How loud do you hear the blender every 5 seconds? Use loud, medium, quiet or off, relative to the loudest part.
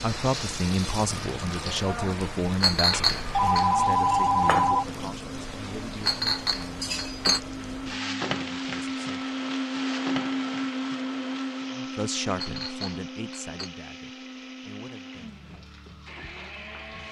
medium, loud, loud, medium.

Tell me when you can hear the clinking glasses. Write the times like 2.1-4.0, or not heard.
2.6-3.6, 6.0-7.4, 12.3-13.7.